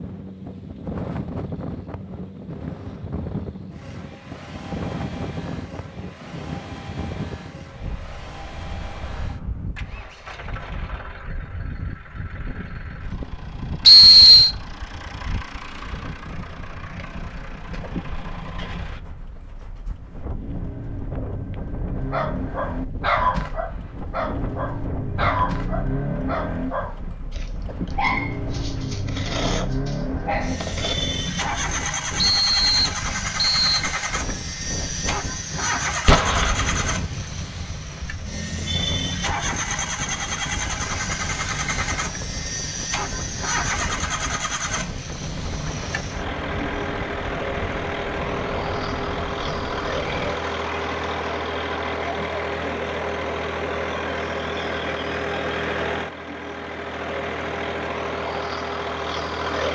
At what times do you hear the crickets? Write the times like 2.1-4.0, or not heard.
not heard.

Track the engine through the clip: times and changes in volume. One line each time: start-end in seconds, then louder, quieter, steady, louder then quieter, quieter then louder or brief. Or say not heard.
0.0-59.7 louder.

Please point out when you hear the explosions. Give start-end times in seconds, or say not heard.
36.0-37.0.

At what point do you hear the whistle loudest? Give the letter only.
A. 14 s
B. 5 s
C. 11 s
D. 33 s
A.